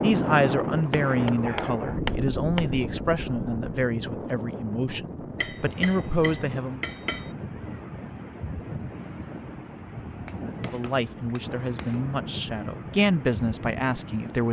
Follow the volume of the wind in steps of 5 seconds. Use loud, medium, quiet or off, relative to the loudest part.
loud, medium, medium.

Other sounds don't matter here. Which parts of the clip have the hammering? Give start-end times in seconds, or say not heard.
0.9-2.6, 5.3-7.3, 10.2-12.1.